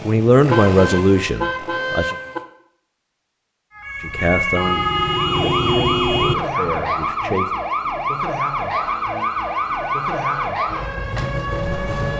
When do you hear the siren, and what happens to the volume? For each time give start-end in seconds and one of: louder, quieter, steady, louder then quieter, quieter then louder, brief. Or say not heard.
3.8-12.1 steady.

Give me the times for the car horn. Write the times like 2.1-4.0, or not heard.
0.5-2.4, 4.5-6.3, 9.0-10.6.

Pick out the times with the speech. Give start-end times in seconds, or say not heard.
0.0-2.1, 4.0-7.5.